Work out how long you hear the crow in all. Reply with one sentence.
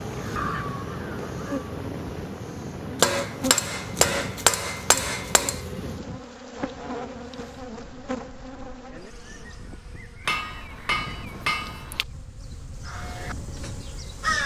You can hear the crow for 3 seconds altogether.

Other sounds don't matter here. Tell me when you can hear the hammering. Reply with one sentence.
The hammering can be heard from 3.0 to 5.6 s and from 10.2 to 12.1 s.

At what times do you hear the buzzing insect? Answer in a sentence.
You can hear the buzzing insect from 0.0 to 14.4 s.